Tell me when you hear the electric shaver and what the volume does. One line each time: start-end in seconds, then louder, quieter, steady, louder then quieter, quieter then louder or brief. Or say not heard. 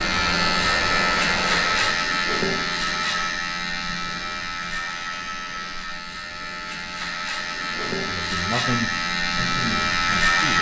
0.0-10.5 quieter then louder.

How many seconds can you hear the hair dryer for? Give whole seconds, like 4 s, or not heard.
2 s.